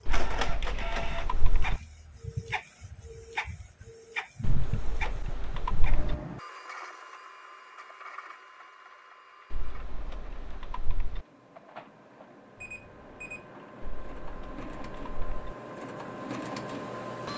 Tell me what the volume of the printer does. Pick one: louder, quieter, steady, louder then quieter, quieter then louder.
quieter then louder.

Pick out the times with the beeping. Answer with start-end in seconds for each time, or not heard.
12.6-13.4.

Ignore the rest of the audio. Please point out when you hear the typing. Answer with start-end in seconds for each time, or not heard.
0.1-1.8, 4.4-6.2, 9.5-11.2, 13.8-15.6.